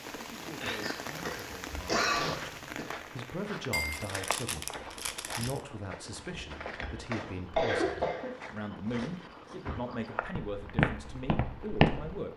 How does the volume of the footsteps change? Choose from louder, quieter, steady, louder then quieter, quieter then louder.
louder.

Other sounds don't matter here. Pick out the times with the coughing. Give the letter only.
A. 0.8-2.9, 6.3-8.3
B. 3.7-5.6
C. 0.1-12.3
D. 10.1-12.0
A.